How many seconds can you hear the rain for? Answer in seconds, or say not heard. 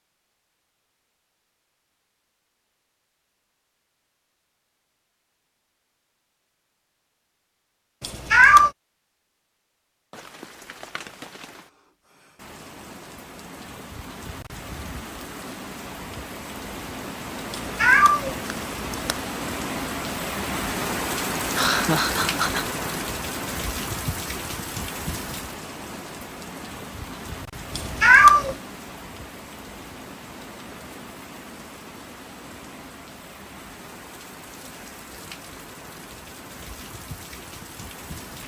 28 s.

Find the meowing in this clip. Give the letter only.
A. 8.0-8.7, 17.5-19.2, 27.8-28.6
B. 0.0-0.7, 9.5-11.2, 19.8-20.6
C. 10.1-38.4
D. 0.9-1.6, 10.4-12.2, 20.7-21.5
A.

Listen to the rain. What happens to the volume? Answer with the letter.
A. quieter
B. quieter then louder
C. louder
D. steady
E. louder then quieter
E.